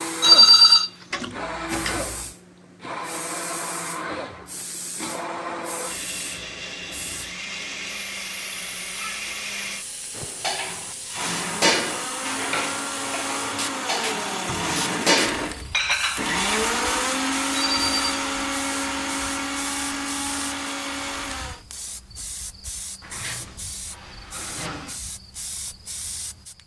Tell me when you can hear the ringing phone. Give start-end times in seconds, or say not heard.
0.2-1.2, 17.6-18.1.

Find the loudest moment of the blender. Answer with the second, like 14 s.
17 s.